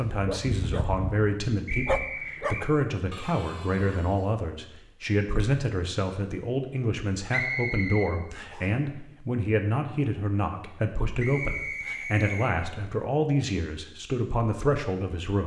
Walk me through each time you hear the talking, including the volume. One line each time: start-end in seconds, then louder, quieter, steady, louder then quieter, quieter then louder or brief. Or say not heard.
0.0-15.4 steady.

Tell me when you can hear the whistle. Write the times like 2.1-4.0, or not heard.
1.6-2.7, 7.3-8.7, 11.2-12.6.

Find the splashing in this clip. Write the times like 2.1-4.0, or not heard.
not heard.